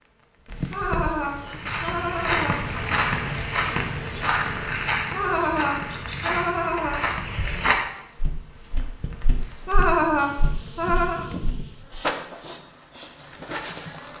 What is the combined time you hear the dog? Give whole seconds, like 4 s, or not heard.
not heard.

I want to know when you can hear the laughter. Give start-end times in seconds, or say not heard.
0.7-2.6, 5.1-7.0, 9.7-11.2.